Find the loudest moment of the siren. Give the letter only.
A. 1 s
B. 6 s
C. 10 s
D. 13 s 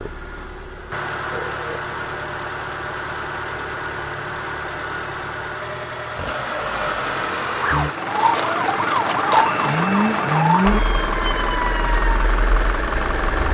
C.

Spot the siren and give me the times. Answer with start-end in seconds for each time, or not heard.
7.5-13.5.